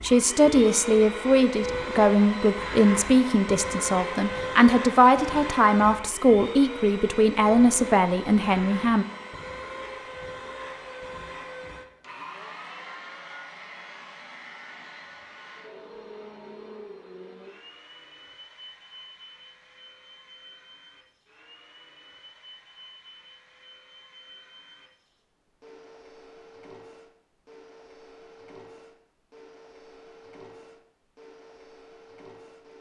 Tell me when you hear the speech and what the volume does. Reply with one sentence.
The speech can be heard from 0.0 to 9.1 s, at a steady volume.